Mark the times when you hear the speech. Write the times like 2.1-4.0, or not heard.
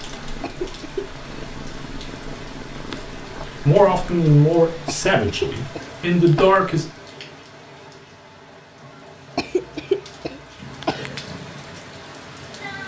3.6-6.8.